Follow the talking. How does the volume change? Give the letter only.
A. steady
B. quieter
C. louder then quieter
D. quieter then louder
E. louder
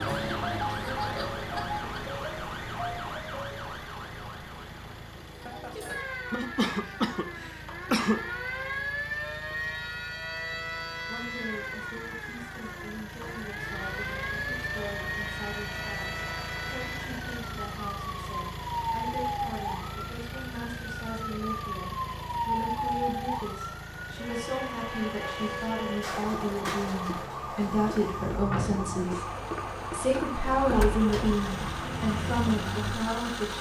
E.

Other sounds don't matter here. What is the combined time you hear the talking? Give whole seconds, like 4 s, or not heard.
22 s.